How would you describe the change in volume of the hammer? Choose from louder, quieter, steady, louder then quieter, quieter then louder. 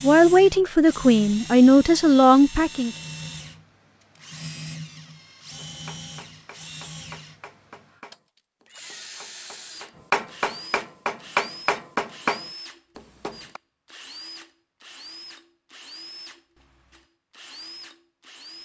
louder.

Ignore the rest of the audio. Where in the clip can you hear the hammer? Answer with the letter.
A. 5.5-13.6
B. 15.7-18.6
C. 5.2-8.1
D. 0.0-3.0
A.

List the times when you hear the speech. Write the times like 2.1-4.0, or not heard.
0.0-3.0.